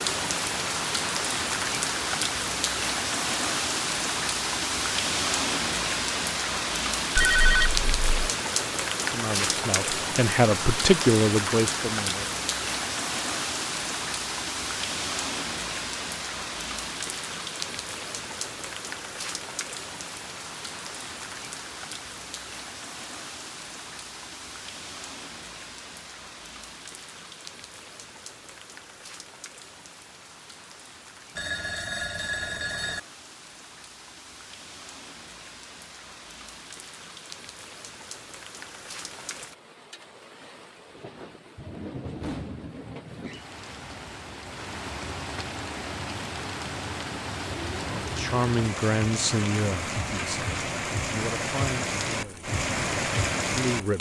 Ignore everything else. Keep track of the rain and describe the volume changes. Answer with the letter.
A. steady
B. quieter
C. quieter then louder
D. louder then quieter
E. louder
C.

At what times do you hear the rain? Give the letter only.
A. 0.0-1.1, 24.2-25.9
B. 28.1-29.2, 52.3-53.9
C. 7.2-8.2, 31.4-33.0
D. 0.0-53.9
D.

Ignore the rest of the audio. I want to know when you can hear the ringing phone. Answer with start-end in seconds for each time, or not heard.
7.2-8.2, 31.4-33.0.